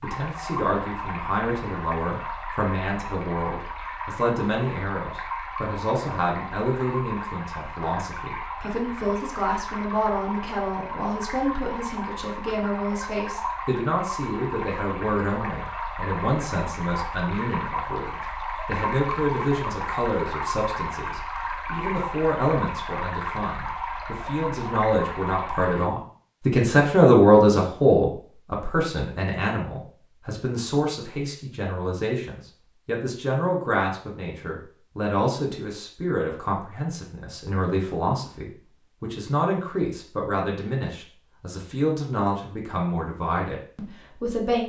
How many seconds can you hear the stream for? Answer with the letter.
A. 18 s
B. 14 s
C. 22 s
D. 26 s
D.